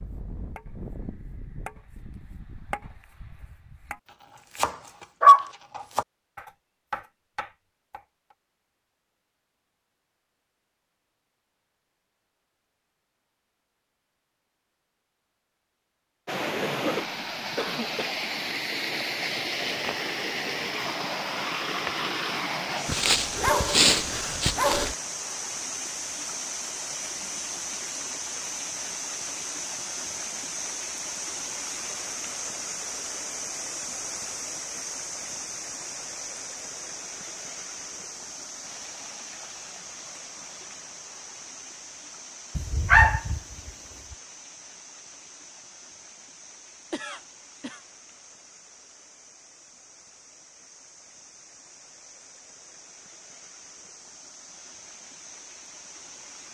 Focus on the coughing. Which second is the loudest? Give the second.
17 s.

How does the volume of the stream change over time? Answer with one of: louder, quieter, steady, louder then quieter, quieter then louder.
quieter.